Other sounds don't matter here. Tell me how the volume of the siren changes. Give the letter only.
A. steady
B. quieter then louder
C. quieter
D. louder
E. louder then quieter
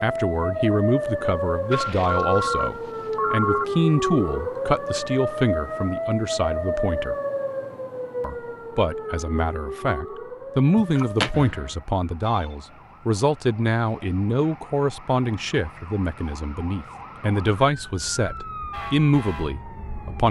B.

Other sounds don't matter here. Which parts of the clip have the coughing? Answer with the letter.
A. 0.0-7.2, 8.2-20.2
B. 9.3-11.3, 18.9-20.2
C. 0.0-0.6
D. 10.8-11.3
D.